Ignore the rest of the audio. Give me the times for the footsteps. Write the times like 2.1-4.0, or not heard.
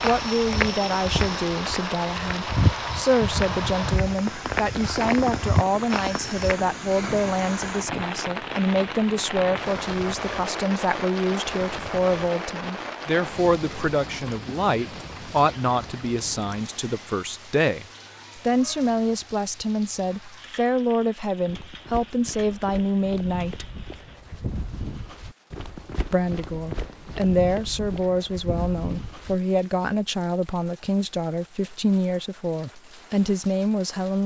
0.0-6.5, 21.4-29.4.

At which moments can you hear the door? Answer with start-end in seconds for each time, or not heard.
not heard.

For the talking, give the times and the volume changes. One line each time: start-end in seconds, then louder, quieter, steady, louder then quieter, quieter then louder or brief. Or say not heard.
0.0-23.7 steady
26.1-34.2 steady.